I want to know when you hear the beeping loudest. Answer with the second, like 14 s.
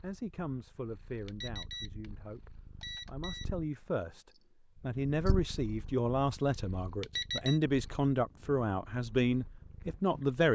7 s.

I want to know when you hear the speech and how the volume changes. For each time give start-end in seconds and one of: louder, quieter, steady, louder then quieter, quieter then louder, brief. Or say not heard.
0.0-10.5 louder.